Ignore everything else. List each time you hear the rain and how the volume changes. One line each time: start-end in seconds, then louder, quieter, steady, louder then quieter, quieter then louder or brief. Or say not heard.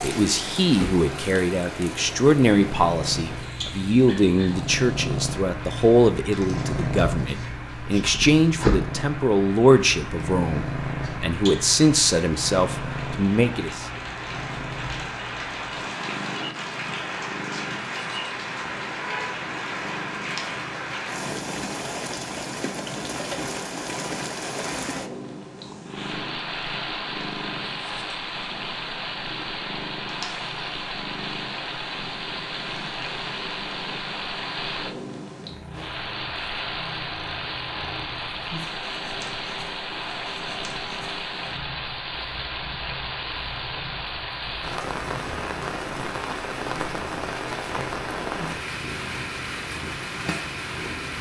0.0-51.1 louder.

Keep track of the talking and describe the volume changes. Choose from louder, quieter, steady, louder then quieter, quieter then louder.
steady.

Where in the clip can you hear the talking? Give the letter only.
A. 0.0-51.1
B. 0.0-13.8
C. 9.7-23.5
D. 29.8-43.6
B.